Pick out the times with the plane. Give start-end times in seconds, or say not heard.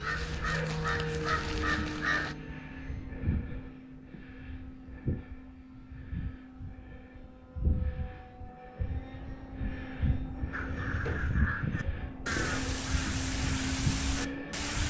0.0-14.8.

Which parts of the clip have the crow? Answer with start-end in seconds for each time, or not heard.
0.0-2.4, 10.5-14.8.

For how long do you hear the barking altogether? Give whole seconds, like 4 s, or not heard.
not heard.